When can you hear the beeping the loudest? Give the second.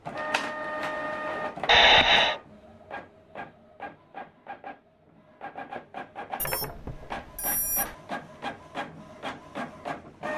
2 s.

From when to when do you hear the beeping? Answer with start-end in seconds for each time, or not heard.
1.6-2.4, 6.4-7.9.